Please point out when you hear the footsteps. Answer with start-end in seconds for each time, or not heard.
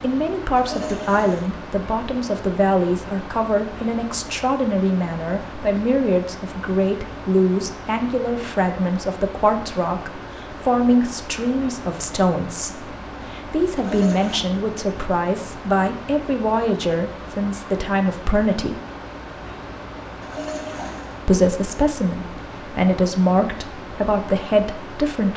not heard.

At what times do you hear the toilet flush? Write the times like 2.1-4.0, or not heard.
0.6-1.5, 13.8-14.4, 20.2-21.1.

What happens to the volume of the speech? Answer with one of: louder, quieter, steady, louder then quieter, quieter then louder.
steady.